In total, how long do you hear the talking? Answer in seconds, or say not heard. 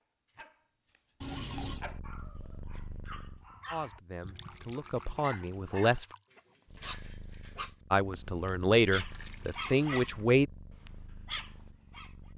5 s.